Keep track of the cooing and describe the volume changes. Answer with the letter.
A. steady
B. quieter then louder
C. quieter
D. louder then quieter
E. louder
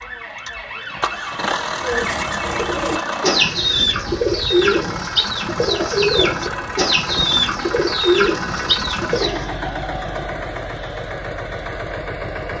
A.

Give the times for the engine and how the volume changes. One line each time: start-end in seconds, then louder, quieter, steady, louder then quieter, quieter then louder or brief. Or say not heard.
0.0-12.5 steady.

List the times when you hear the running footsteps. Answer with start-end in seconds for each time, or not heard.
not heard.